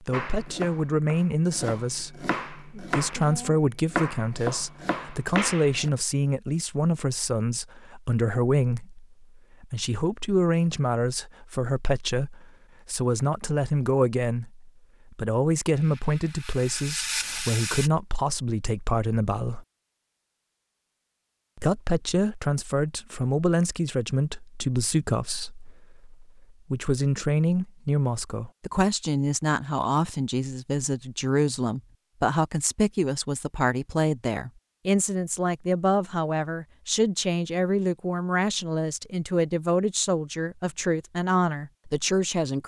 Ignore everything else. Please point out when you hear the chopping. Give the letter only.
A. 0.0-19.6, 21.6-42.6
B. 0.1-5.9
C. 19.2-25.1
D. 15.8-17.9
B.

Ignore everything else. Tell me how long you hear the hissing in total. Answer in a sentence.
You can hear the hissing for 2 seconds altogether.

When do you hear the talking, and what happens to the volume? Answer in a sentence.
You can hear the talking from 0.0 to 19.6 s, at a steady volume; and from 21.6 to 42.6 s, at a steady volume.